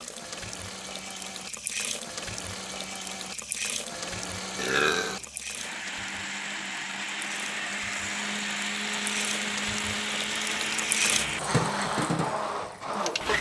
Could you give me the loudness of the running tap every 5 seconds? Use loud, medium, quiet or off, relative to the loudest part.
medium, medium, loud.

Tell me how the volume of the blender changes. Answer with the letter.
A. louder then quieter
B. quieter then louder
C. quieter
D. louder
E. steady
D.